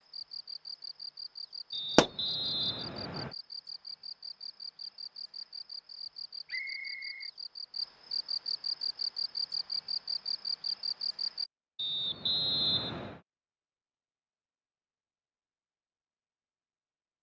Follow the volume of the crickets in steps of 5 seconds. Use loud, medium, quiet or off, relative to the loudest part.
medium, loud, loud, off.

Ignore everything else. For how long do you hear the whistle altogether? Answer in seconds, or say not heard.
4 s.